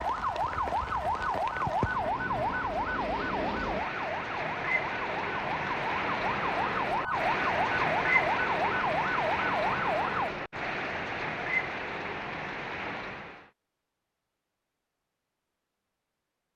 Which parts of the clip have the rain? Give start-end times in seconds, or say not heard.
0.0-13.5.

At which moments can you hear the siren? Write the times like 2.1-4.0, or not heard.
0.0-10.3.